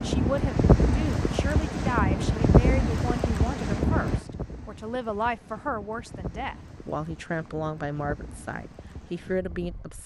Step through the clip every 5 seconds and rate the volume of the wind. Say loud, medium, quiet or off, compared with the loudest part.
loud, quiet.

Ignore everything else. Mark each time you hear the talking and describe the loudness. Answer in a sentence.
The talking can be heard from 0.0 to 10.0 s, at a steady volume.